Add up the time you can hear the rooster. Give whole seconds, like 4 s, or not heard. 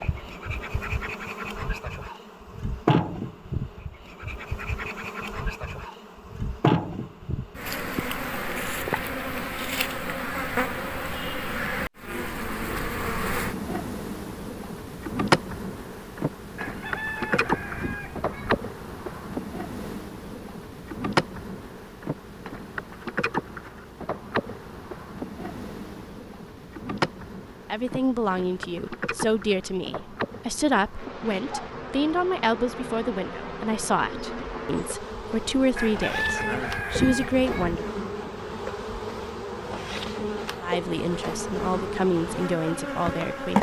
4 s.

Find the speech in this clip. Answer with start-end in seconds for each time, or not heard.
27.7-37.9, 40.6-43.5.